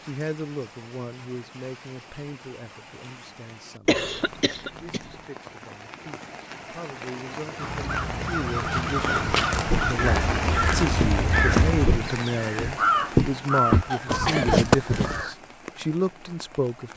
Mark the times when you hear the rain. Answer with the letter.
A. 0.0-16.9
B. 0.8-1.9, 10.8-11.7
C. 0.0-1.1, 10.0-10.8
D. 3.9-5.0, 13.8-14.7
A.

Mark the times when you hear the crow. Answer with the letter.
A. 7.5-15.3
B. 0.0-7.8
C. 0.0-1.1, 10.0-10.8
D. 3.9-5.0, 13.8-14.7
A.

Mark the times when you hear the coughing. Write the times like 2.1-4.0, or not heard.
3.9-5.0, 13.8-14.7.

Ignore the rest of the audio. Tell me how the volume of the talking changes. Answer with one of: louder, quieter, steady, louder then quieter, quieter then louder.
quieter then louder.